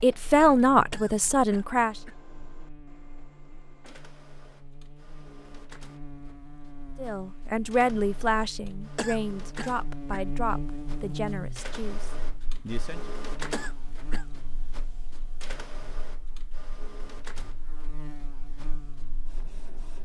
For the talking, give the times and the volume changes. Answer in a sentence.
The talking can be heard briefly from 0.0 to 1.9 s; and from 7.0 to 13.2 s, getting quieter.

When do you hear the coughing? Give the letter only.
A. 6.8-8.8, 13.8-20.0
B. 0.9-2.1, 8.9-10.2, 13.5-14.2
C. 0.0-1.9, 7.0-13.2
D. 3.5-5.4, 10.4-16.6
B.